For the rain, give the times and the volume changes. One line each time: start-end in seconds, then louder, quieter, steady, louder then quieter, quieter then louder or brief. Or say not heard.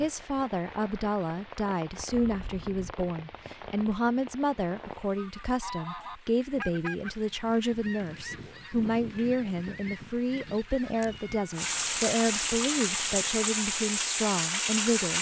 0.0-15.1 quieter then louder.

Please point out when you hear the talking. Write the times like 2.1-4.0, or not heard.
0.0-15.1.